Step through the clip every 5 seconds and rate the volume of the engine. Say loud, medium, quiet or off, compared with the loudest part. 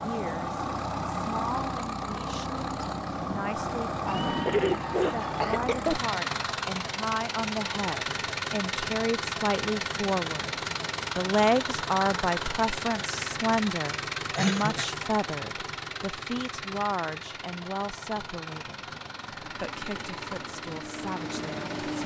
loud, loud, loud, medium, loud.